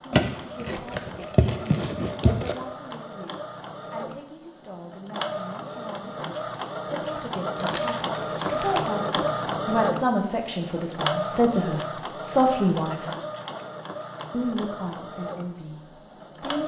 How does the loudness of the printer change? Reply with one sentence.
The loudness of the printer goes up, then down.